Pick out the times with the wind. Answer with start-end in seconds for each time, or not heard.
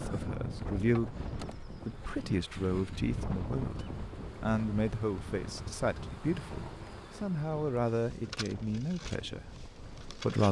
0.0-10.3.